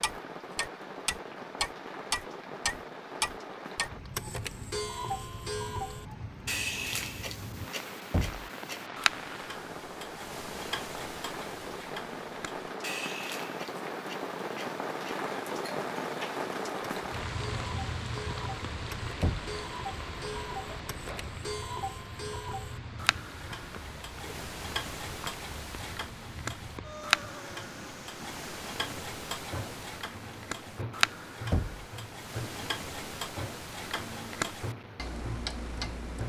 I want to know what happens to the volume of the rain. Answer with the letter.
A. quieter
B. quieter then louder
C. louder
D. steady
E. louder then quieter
E.